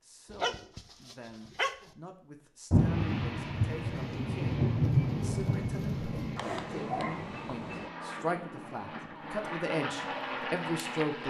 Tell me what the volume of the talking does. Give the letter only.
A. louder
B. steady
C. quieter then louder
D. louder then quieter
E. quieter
A.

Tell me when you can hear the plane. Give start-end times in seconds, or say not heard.
2.7-11.2.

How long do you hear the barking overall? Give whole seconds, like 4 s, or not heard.
3 s.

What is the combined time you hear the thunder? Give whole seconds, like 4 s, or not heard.
4 s.